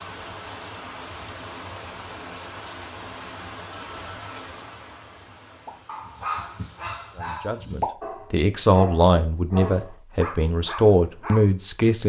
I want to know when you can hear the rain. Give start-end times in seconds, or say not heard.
0.0-7.2.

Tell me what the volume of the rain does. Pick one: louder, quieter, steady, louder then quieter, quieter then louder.
quieter.